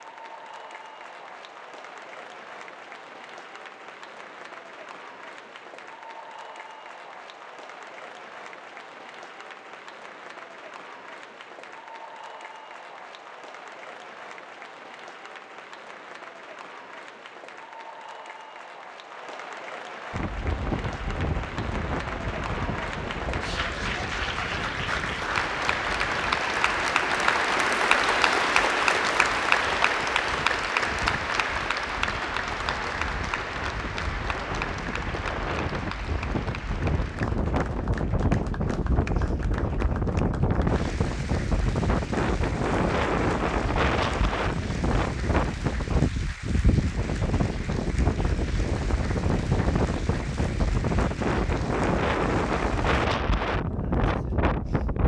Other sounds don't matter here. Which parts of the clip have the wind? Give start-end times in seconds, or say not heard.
20.1-55.0.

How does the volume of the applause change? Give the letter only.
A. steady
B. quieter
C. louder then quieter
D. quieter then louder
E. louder
C.